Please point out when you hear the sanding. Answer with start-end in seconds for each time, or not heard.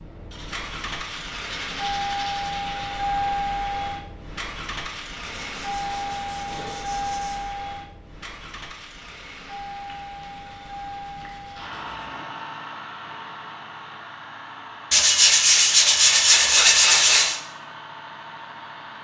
0.3-3.0, 5.2-7.5, 9.8-12.2, 14.9-17.4.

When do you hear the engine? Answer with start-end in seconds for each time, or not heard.
0.0-19.0.